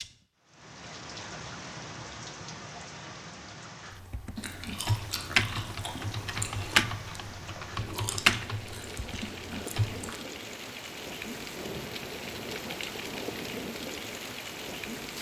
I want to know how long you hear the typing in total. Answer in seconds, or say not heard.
6 s.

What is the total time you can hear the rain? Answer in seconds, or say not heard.
15 s.